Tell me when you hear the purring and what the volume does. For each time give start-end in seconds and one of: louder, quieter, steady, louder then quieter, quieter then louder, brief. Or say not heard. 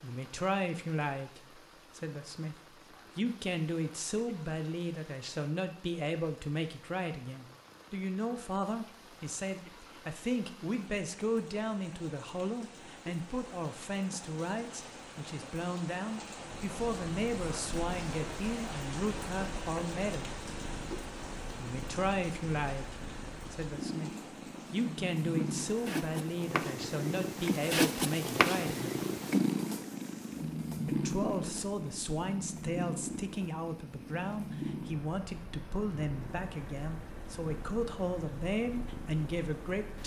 16.6-40.0 louder then quieter.